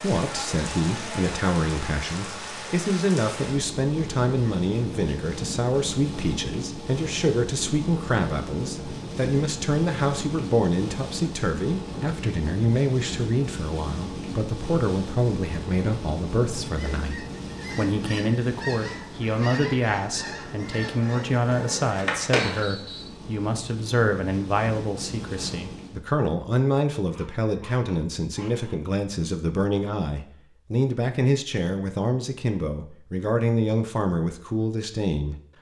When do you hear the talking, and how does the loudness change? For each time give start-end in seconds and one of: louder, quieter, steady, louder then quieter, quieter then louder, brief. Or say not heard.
0.0-35.4 steady.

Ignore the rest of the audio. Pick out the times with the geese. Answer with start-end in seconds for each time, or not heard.
16.6-22.6.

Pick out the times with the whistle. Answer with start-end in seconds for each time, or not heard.
22.4-23.2.